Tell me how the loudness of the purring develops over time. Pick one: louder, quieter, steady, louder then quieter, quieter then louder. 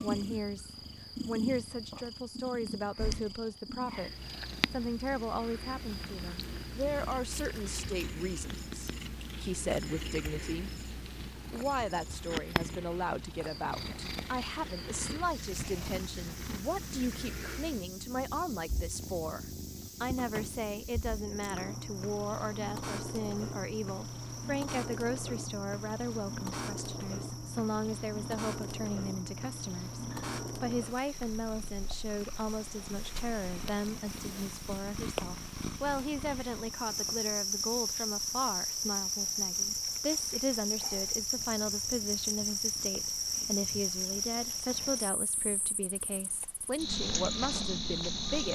quieter.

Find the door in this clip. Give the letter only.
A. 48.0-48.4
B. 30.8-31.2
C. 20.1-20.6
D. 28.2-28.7
C.